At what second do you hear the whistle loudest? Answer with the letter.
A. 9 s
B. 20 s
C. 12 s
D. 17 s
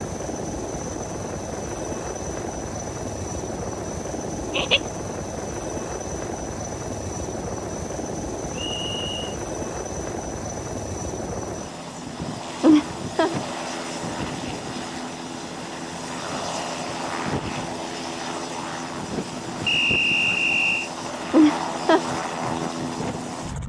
B.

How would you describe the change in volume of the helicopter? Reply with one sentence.
The loudness of the helicopter stays about the same.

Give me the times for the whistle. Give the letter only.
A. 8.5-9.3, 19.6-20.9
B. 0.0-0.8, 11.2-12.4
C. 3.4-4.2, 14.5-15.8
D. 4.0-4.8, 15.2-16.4
A.